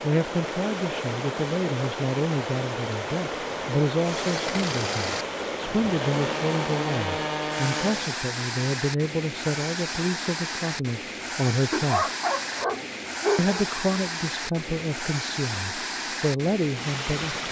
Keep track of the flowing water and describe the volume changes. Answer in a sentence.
The volume of the flowing water stays about the same.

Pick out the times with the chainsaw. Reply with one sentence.
You can hear the chainsaw from 4.0 to 8.2 s.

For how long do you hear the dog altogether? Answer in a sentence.
The dog can be heard for 2 seconds in total.